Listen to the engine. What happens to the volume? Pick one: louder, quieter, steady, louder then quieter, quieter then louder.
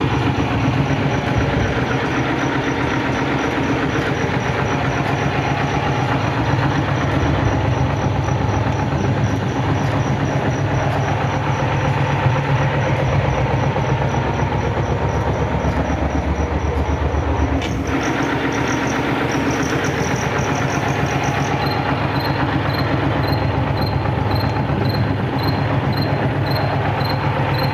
steady.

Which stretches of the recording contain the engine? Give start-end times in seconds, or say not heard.
0.0-27.6.